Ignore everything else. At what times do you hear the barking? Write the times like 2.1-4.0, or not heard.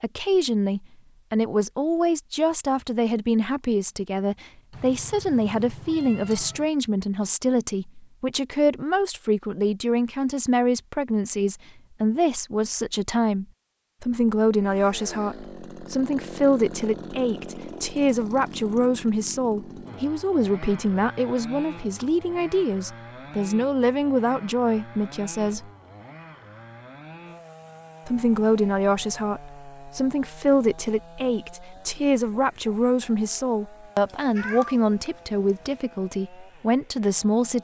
not heard.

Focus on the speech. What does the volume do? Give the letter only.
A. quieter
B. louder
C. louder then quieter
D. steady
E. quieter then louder
D.